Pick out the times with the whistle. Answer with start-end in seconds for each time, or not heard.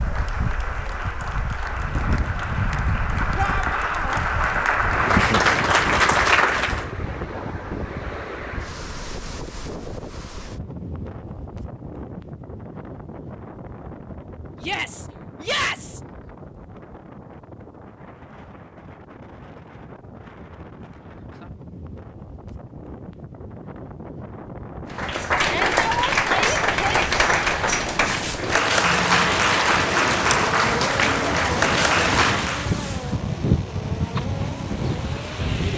not heard.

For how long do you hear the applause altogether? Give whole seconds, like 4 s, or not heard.
15 s.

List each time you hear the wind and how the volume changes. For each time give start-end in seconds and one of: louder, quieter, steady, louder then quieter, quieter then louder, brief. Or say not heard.
0.0-35.7 quieter then louder.